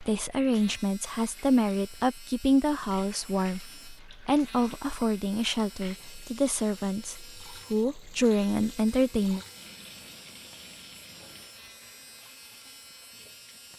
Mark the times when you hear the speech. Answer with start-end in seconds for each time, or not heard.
0.0-9.4.